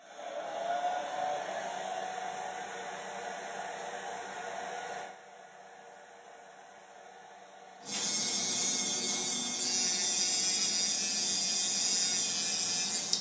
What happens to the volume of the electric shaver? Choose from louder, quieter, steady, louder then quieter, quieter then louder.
steady.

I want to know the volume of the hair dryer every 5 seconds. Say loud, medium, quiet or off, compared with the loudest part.
loud, quiet, quiet.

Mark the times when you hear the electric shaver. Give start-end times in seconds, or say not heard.
7.8-13.1.